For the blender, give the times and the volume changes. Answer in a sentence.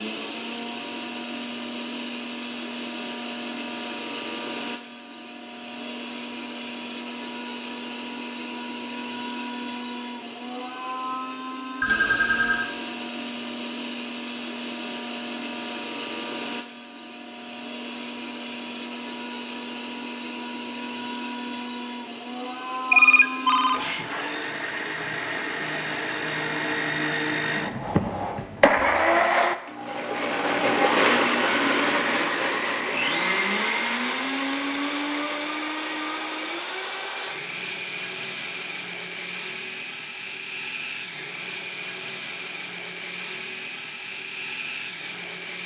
You can hear the blender from 0.0 to 45.6 s, getting louder then quieter.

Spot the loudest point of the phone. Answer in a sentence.
The volume of the phone peaks at 23 seconds.